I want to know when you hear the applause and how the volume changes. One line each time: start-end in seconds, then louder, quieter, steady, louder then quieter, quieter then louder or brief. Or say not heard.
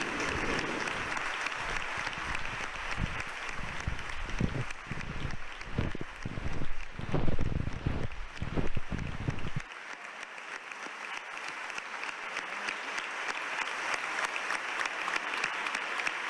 0.0-16.2 quieter then louder.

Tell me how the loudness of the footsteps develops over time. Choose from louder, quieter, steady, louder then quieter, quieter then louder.
louder.